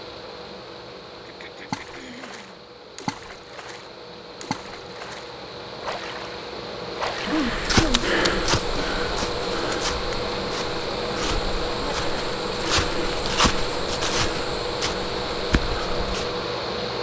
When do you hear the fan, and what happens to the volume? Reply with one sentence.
The fan can be heard from 0.0 to 16.9 s, getting louder.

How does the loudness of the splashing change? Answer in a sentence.
The loudness of the splashing goes down, then up.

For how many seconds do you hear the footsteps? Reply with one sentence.
The footsteps can be heard for 9 seconds in total.